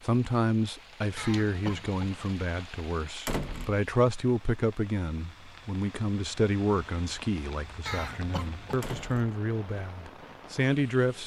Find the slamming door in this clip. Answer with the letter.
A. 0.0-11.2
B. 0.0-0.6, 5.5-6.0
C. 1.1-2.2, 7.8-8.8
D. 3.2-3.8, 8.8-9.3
D.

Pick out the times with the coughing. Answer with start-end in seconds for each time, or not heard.
1.1-2.2, 7.8-8.8.